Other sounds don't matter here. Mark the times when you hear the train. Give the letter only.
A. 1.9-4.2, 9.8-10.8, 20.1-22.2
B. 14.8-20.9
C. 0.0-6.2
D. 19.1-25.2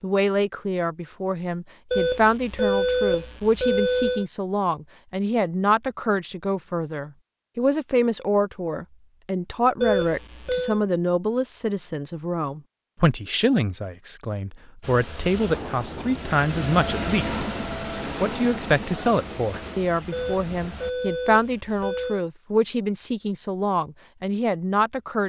B.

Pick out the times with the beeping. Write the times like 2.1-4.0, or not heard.
1.9-4.2, 9.8-10.8, 20.1-22.2.